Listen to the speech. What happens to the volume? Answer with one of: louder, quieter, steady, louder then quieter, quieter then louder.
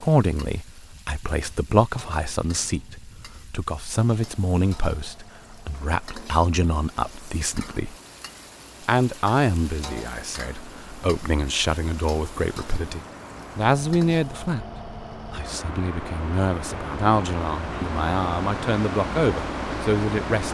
steady.